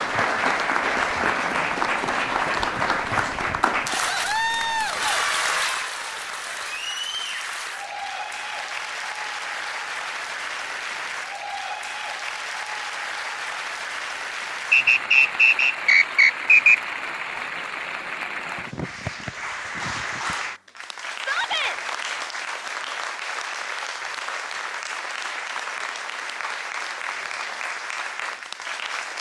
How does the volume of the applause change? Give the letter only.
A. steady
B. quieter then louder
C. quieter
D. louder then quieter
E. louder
C.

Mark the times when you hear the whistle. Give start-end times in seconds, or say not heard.
14.7-16.8.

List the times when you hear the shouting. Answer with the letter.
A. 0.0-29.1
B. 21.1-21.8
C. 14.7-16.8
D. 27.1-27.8
B.